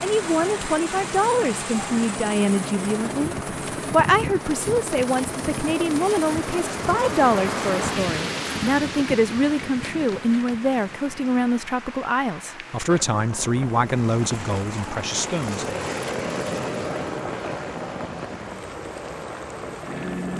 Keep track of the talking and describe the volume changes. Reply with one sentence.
The loudness of the talking stays about the same.